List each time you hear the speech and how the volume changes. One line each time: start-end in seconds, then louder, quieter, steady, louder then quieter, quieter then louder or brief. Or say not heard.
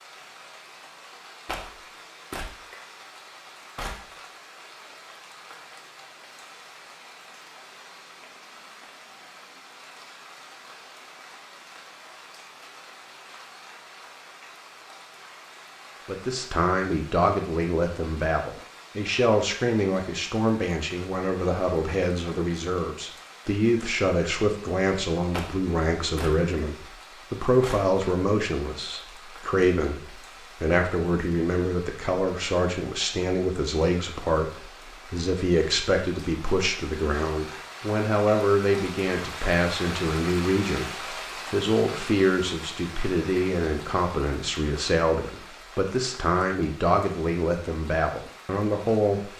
16.1-49.3 steady.